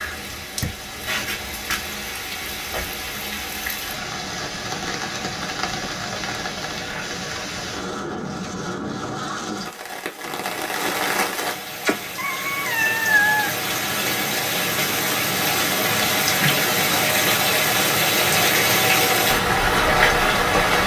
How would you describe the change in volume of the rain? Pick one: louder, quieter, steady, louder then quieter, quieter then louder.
louder.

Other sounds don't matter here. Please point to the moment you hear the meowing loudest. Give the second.
13 s.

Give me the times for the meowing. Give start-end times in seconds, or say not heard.
11.8-13.7.